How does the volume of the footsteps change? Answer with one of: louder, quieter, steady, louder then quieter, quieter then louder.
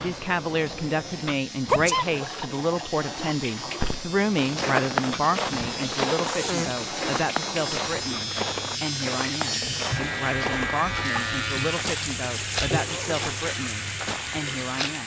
quieter.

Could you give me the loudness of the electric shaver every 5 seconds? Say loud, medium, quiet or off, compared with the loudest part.
medium, loud, loud.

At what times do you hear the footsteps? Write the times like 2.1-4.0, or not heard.
3.8-15.0.